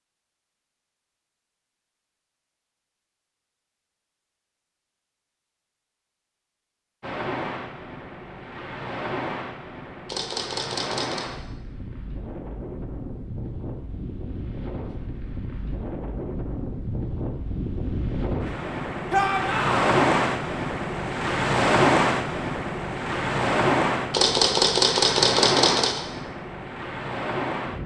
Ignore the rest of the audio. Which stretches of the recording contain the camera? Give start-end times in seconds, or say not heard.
10.1-11.3, 24.1-26.0.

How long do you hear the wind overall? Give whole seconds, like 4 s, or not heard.
21 s.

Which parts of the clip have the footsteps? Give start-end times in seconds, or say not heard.
not heard.